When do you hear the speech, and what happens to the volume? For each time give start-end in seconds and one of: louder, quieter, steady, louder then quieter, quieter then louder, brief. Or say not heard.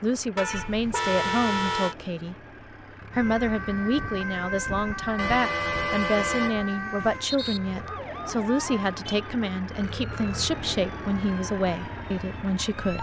0.0-2.4 brief
3.1-12.9 steady.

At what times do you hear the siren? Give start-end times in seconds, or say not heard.
3.1-12.9.